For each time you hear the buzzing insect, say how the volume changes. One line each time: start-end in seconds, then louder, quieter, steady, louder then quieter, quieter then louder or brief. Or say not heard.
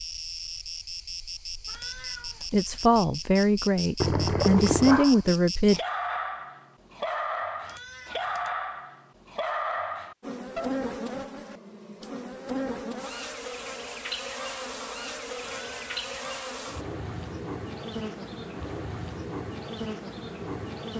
0.0-5.8 steady
10.2-20.9 steady.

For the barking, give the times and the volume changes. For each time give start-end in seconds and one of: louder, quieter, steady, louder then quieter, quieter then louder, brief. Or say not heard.
4.7-10.8 steady.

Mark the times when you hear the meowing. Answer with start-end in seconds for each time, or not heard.
1.6-2.5, 7.6-8.5, 15.4-16.3.